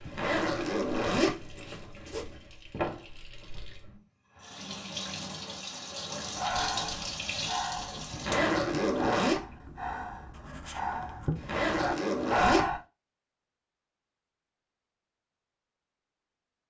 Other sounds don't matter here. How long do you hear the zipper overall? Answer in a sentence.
You can hear the zipper for 5 seconds altogether.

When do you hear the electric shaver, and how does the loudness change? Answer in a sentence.
You can't hear the electric shaver here.